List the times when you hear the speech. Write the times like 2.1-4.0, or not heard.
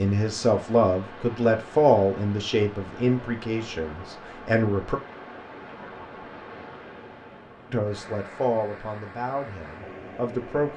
0.0-5.0, 7.7-10.7.